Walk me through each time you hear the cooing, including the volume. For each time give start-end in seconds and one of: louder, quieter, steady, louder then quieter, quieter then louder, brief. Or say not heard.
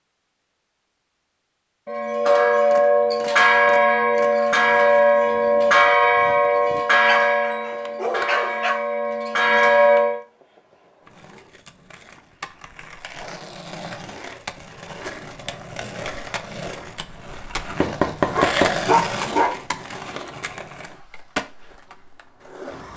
not heard.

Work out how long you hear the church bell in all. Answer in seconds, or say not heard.
8 s.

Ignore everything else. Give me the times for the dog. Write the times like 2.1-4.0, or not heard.
7.0-8.8, 17.8-19.6.